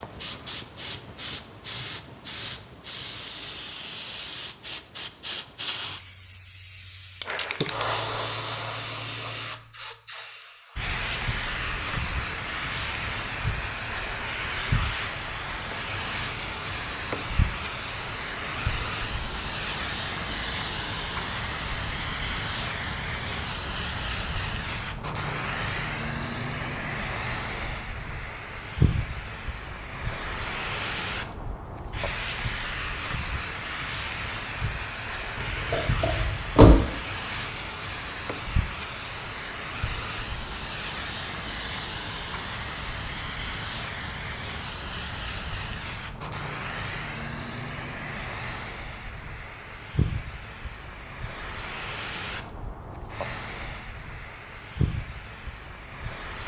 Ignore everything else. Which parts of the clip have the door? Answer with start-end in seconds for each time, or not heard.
35.4-36.8.